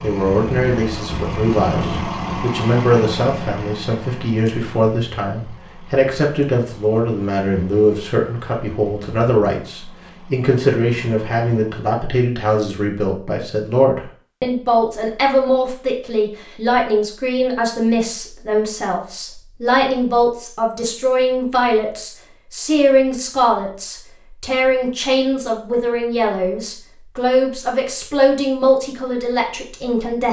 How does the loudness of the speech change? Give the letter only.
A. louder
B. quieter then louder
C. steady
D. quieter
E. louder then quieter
C.